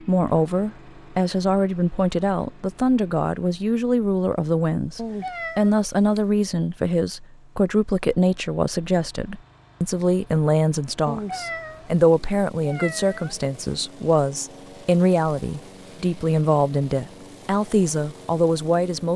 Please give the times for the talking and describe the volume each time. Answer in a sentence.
You can hear the talking from 0.1 to 19.1 s, at a steady volume.